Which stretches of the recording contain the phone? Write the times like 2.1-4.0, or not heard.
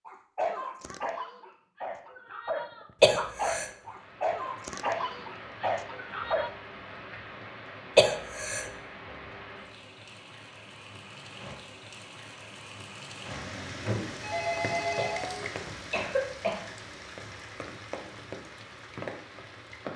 13.8-15.4.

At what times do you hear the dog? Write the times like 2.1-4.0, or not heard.
0.1-6.5.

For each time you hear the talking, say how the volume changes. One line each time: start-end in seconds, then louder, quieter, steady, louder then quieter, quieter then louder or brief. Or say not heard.
not heard.